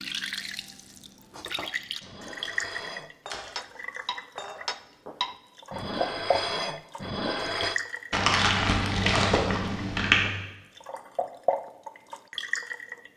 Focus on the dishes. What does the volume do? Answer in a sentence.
The loudness of the dishes goes up.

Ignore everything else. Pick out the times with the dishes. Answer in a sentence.
The dishes can be heard from 1.3 to 7.8 s.